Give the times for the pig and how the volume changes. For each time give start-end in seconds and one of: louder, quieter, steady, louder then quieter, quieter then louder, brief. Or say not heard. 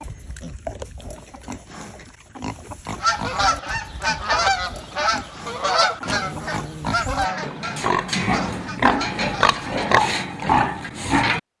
0.0-11.4 louder.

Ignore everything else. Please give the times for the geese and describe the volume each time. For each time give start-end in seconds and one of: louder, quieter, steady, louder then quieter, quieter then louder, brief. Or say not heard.
3.0-9.6 quieter.